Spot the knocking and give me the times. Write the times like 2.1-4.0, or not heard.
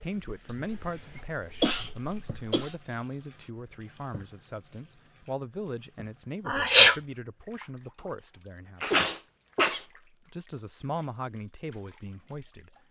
not heard.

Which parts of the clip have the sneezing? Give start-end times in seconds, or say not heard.
0.5-2.8, 6.5-7.0, 8.8-9.8.